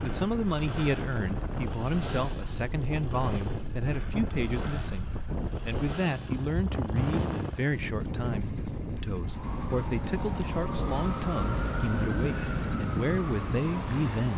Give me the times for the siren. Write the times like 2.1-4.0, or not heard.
9.2-14.3.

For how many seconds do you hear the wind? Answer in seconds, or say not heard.
14 s.